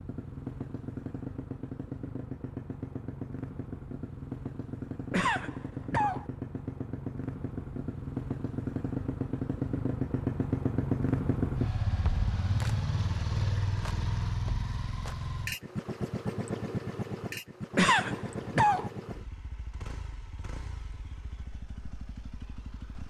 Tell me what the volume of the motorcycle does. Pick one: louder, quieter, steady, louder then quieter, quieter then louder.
louder then quieter.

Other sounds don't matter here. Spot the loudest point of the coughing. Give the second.
18 s.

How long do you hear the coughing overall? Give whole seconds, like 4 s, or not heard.
2 s.